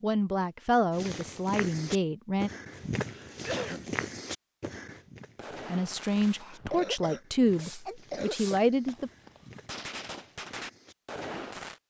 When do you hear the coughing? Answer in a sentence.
The coughing can be heard from 3.0 to 4.0 s and from 6.6 to 8.6 s.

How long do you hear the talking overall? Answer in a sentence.
The talking can be heard for 6 seconds in total.